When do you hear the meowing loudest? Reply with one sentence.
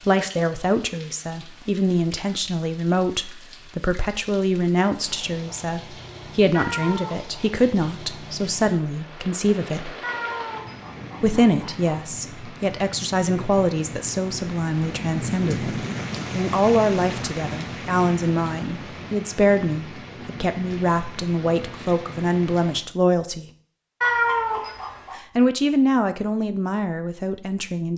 The loudest moment of the meowing is at 24 seconds.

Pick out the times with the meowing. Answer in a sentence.
The meowing can be heard from 6.5 to 7.2 s, from 10.0 to 12.0 s and from 24.0 to 25.1 s.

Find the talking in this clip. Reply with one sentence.
The talking can be heard from 0.1 to 9.9 s, from 11.2 to 23.4 s and from 25.1 to 27.9 s.